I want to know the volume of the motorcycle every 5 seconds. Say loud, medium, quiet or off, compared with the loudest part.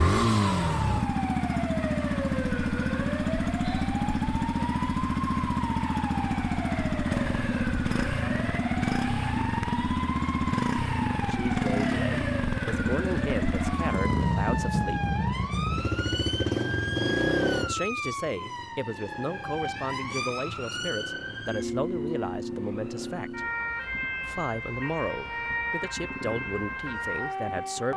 loud, loud, loud, loud, quiet, quiet.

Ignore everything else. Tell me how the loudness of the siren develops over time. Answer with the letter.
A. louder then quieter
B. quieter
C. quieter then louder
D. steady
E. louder
D.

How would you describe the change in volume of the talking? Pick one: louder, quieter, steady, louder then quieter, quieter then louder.
steady.